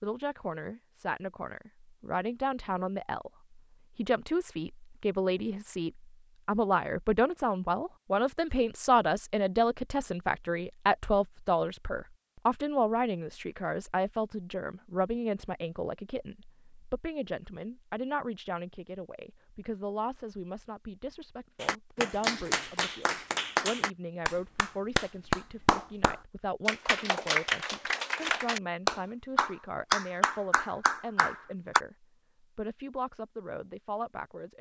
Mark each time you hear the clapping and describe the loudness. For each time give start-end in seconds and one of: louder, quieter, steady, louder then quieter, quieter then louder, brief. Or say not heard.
21.6-31.8 steady.